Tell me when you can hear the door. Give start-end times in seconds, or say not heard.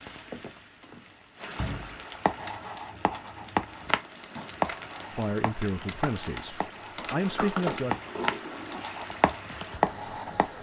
1.5-2.5, 7.0-8.8.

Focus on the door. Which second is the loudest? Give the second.
8 s.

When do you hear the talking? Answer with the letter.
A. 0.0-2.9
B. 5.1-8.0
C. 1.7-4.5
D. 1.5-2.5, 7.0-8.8
B.